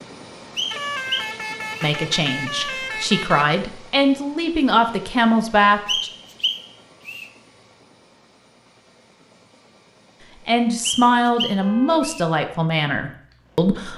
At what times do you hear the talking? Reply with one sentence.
The talking can be heard from 1.8 to 6.1 s and from 10.4 to 13.9 s.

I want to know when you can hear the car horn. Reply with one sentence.
You can hear the car horn from 0.7 to 3.5 s and from 11.4 to 12.1 s.